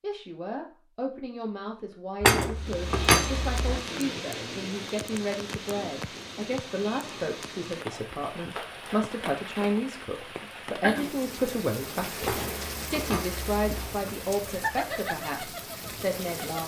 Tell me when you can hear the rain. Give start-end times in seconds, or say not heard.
2.5-16.6.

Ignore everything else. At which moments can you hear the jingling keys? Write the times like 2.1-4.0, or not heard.
2.2-3.8, 12.2-14.1.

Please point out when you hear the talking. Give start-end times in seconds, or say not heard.
0.0-16.6.